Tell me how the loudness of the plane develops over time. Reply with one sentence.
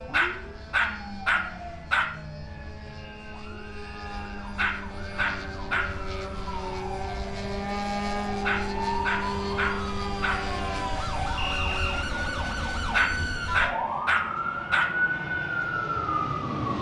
The loudness of the plane goes up, then down.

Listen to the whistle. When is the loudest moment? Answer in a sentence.
The volume of the whistle peaks at 12 seconds.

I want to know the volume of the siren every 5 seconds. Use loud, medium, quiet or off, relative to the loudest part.
quiet, medium, loud, loud.